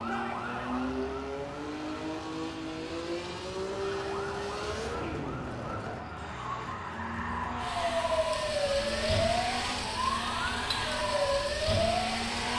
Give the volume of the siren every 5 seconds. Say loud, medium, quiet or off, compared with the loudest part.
medium, loud, loud.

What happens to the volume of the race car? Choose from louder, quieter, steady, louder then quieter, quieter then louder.
steady.